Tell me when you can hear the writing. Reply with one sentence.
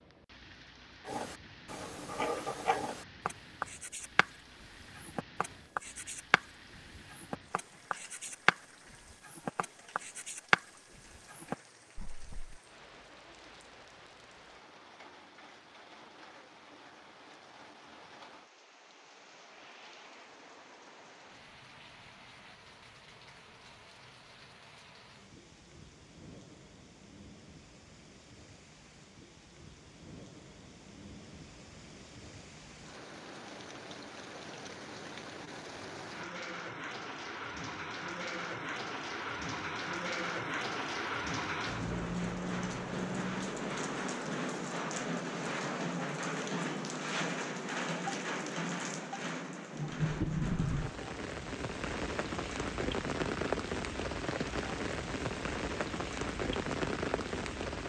The writing can be heard from 1.1 to 12.6 s.